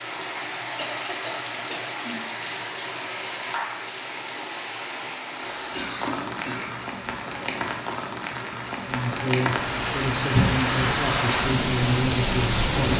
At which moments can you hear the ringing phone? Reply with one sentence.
You can't hear the ringing phone here.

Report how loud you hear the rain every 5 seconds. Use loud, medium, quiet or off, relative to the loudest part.
medium, medium, loud.